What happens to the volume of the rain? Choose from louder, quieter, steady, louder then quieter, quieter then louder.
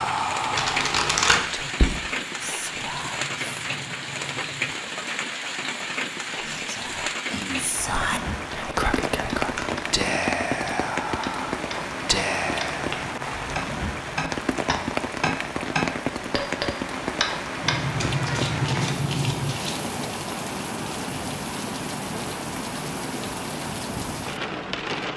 steady.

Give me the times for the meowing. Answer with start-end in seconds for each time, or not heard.
2.7-4.8, 12.9-14.2, 17.6-19.6.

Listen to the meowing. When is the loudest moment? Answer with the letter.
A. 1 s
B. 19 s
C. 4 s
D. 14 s
B.